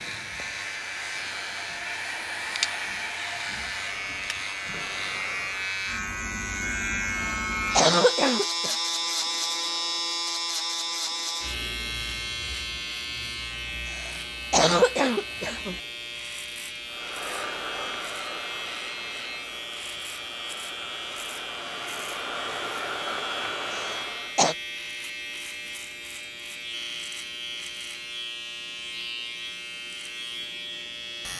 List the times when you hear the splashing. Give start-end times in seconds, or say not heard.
not heard.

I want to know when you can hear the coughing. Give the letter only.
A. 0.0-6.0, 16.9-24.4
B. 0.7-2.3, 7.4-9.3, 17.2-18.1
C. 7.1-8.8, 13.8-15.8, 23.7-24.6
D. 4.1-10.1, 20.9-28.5
C.